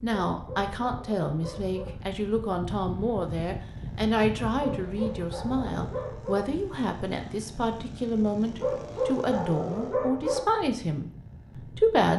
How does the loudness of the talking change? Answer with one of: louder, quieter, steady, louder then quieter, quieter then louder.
steady.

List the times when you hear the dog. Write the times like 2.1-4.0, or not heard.
0.3-1.9, 4.6-6.5, 8.6-10.4.